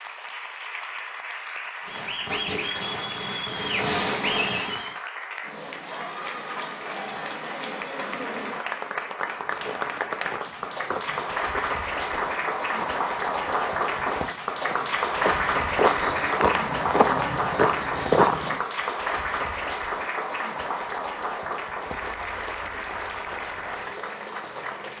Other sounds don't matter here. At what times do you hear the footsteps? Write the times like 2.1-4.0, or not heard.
9.4-18.6.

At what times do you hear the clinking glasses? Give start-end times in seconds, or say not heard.
not heard.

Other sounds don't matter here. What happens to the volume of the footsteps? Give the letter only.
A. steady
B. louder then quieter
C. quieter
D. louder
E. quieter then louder
D.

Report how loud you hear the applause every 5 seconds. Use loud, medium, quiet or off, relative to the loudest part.
medium, medium, loud, loud, medium.